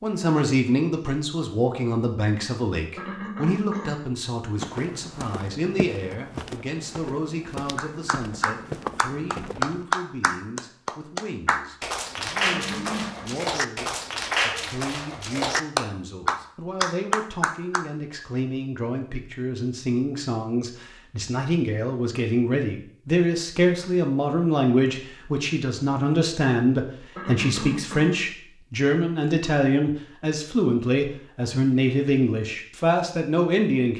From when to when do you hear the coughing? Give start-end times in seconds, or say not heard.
3.0-4.0, 12.4-13.3, 27.1-28.2.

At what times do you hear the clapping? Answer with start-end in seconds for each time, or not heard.
7.8-17.9.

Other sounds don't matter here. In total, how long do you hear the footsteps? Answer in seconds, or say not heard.
5 s.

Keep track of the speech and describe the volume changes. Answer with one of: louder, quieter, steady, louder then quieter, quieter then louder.
quieter then louder.